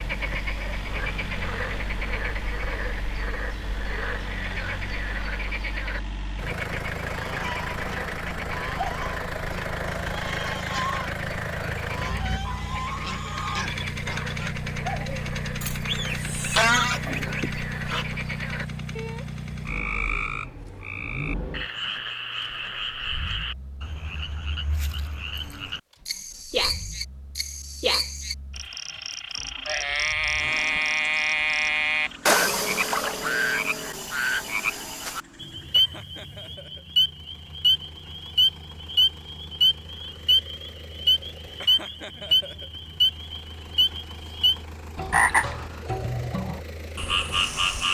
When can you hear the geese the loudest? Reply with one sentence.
The loudest moment of the geese is at 17 seconds.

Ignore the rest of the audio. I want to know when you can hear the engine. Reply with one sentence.
You can hear the engine from 0.0 to 47.9 s.